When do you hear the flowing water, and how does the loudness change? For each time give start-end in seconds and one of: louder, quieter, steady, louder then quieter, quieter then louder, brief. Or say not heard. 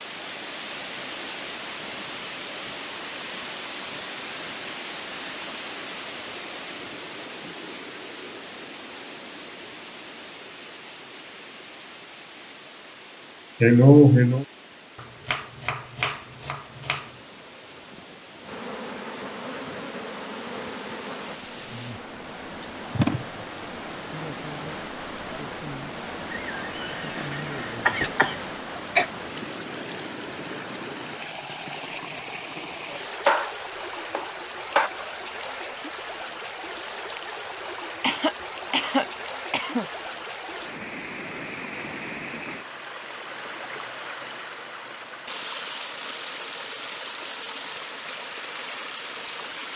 0.0-49.7 quieter then louder.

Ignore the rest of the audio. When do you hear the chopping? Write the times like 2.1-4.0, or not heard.
14.9-17.1, 32.9-34.9.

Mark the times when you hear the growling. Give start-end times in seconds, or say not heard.
not heard.